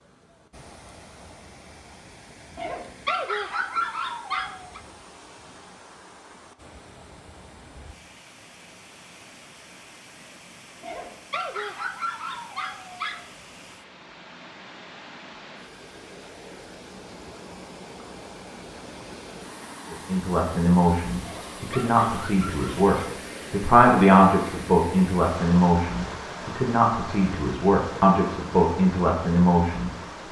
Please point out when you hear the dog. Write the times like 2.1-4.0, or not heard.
2.5-4.8, 10.8-13.2, 21.2-22.9.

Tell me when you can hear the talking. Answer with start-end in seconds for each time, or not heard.
19.9-30.2.